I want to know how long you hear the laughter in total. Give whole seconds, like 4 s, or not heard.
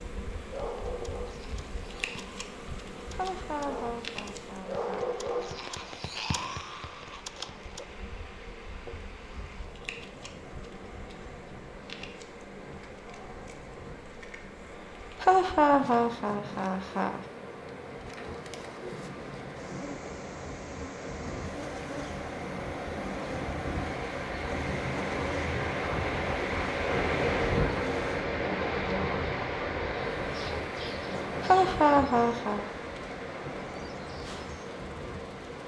5 s.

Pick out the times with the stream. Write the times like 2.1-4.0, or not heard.
0.0-35.6.